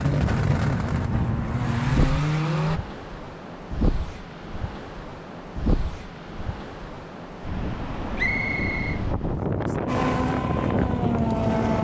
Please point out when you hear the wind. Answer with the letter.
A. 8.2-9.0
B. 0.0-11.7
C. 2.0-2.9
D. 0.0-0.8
B.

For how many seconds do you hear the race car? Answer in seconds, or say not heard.
5 s.